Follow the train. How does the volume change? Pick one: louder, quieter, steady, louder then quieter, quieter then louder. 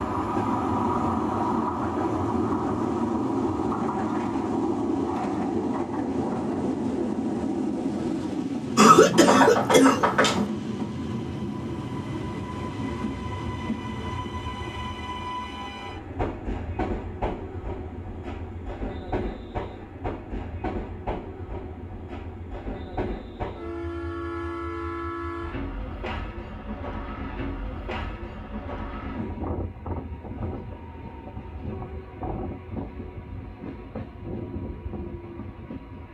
quieter.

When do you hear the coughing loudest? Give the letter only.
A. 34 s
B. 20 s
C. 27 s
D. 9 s
D.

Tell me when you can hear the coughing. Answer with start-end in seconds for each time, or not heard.
8.8-10.5.